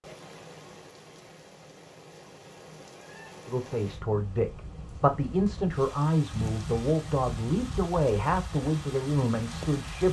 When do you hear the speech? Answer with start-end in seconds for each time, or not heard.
3.5-10.0.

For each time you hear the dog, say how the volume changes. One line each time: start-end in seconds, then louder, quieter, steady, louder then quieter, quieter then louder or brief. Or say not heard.
not heard.